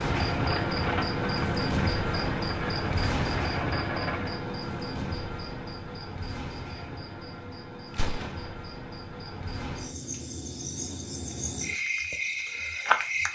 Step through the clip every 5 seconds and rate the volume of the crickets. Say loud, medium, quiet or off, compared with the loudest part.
loud, medium, loud.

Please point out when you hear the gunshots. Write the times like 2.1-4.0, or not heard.
7.9-8.6.